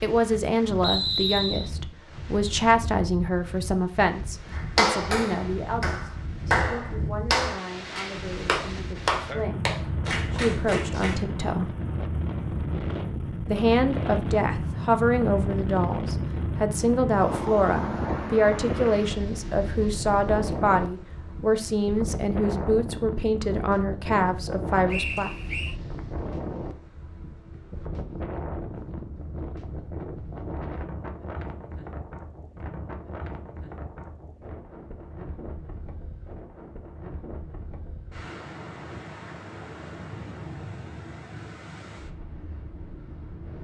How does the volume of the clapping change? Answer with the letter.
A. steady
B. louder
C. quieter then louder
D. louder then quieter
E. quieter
D.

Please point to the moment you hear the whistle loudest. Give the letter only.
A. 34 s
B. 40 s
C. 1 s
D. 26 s
C.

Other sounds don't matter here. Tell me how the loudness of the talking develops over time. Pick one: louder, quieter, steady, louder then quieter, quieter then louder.
quieter then louder.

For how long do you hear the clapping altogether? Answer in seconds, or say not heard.
7 s.